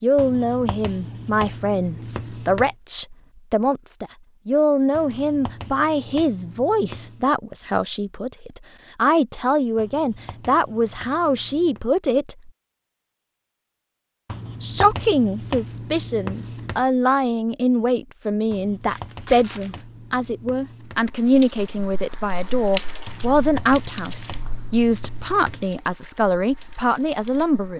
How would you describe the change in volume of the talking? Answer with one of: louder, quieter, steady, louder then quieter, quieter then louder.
steady.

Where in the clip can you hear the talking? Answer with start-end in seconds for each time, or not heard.
0.0-12.5, 14.6-27.7.